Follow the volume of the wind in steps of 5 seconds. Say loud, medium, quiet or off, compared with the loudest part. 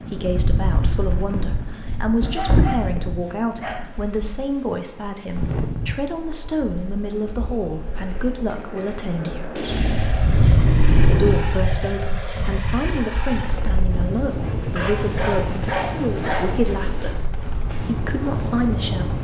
loud, medium, loud, medium.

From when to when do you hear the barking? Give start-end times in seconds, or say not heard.
2.2-3.9, 14.8-16.6.